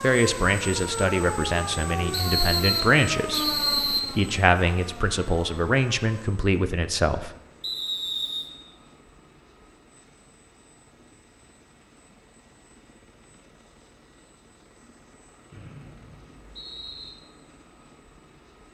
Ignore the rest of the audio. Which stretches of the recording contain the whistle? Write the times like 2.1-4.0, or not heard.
2.1-4.1, 7.6-8.5, 15.5-17.1.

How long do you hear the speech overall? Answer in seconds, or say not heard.
7 s.